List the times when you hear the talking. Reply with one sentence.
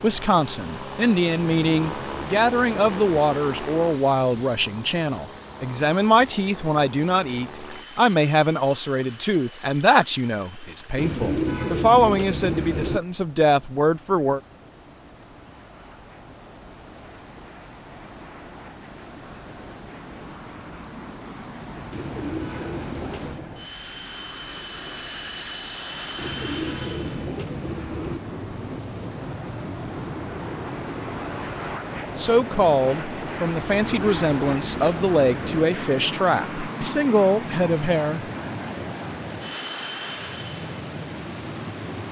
You can hear the talking from 0.0 to 14.4 s and from 32.1 to 38.2 s.